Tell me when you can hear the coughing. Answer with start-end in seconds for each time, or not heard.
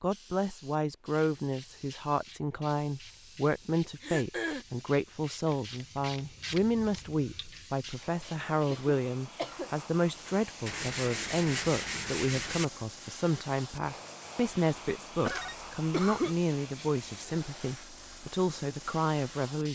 4.0-4.7, 8.7-9.7, 15.2-16.4.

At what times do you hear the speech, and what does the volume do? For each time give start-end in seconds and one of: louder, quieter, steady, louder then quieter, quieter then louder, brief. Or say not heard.
0.0-19.7 steady.